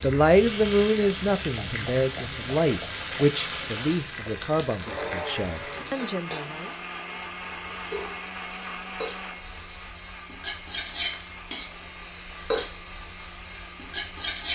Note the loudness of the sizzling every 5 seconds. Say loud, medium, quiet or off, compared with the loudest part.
medium, medium, loud.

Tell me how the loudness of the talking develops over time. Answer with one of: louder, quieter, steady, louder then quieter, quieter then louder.
quieter.